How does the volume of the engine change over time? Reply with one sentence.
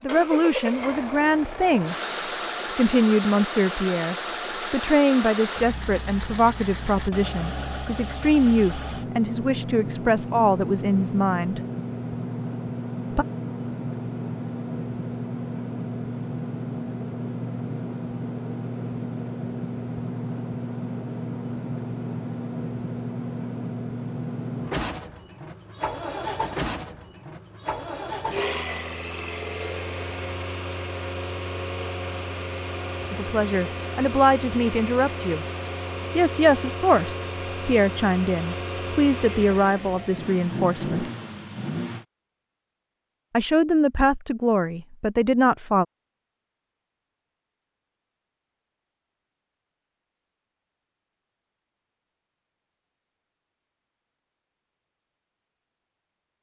The loudness of the engine stays about the same.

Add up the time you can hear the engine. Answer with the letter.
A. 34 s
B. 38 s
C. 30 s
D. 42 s
D.